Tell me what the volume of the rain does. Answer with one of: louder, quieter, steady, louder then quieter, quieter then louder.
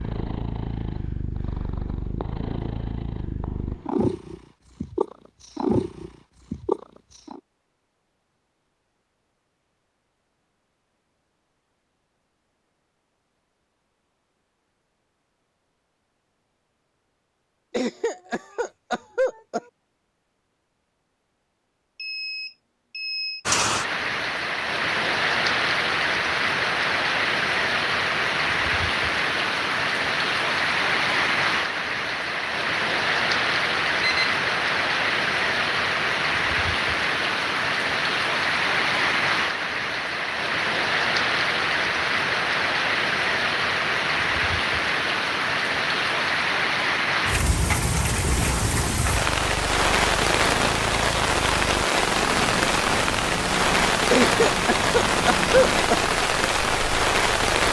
steady.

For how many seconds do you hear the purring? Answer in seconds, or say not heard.
17 s.